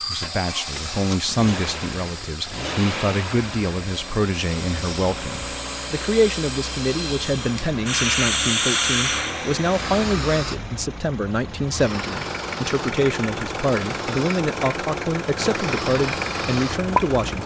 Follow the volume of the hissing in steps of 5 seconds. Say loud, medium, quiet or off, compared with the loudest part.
medium, loud, medium, medium.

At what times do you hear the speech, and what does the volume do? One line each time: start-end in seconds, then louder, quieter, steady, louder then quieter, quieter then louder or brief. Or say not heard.
0.1-17.4 steady.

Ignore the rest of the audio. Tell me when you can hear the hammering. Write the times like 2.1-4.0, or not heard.
not heard.